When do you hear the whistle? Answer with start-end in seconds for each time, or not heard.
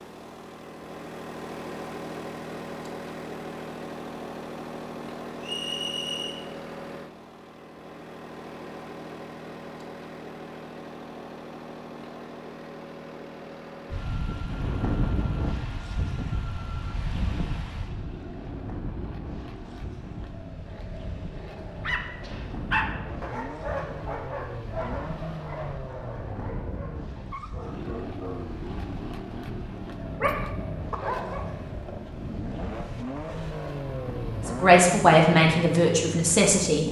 5.4-6.3.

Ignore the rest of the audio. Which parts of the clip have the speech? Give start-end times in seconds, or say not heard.
34.5-36.8.